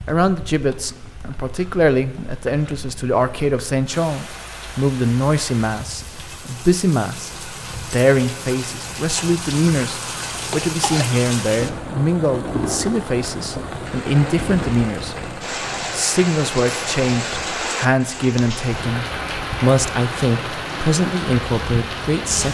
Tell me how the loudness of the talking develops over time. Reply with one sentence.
The loudness of the talking stays about the same.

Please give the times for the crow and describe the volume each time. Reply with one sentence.
You can't hear the crow here.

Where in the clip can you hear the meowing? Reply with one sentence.
You can't hear the meowing here.